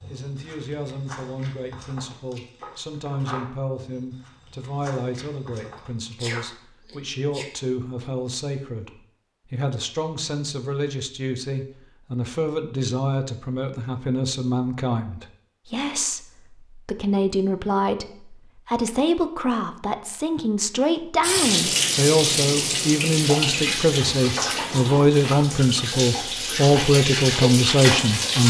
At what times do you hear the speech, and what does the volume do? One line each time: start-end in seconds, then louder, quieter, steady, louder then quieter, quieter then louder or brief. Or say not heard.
0.1-28.4 louder.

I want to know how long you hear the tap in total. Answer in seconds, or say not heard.
7 s.